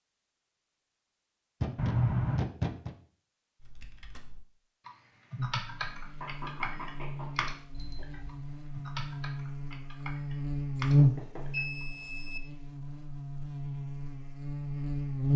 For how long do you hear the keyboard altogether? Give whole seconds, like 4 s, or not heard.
8 s.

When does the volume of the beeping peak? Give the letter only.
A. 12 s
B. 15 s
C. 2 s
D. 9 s
C.